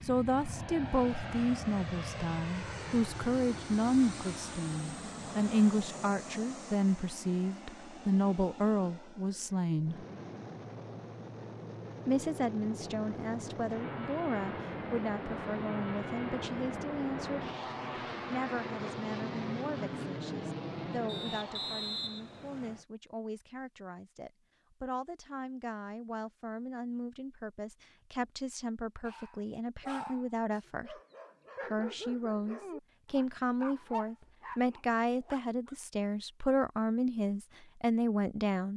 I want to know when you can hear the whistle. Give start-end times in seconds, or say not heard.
21.1-22.9.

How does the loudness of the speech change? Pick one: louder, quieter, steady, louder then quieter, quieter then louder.
quieter then louder.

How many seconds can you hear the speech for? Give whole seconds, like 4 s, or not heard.
35 s.